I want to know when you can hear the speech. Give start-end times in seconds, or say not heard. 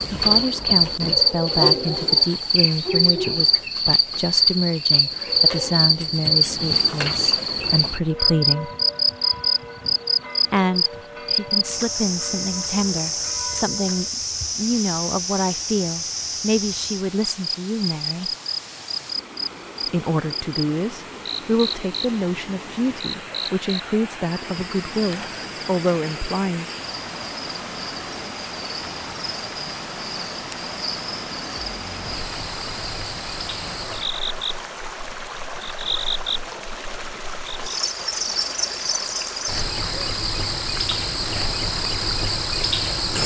0.1-8.7, 10.5-18.3, 19.9-26.6.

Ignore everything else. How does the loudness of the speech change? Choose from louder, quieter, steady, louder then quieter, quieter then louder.
steady.